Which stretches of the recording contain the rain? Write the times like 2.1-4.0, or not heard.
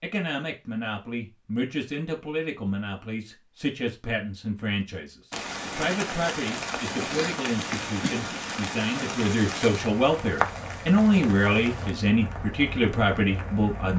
5.3-13.9.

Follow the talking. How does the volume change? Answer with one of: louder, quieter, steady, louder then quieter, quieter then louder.
louder.